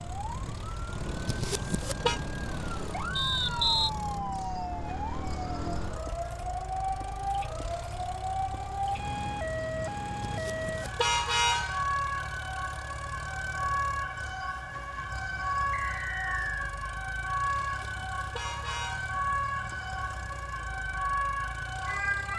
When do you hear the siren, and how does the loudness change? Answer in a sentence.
You can hear the siren from 0.0 to 22.3 s, at a steady volume.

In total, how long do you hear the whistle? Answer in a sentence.
You can hear the whistle for 2 seconds altogether.